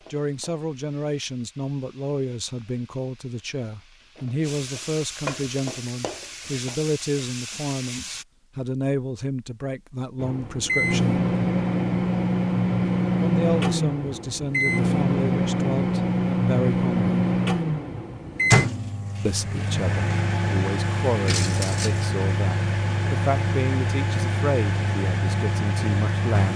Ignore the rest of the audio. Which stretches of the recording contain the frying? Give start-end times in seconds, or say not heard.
0.0-8.2.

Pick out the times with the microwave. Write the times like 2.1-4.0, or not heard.
10.2-26.5.